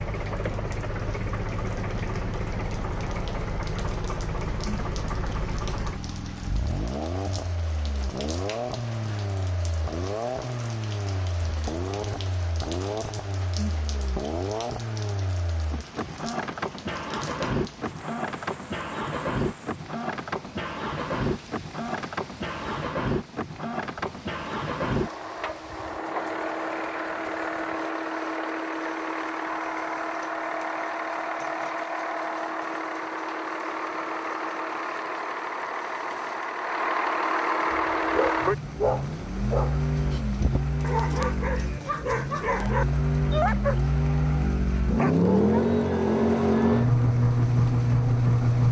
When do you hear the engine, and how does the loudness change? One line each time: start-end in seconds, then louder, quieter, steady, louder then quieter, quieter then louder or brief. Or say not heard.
0.0-48.6 louder.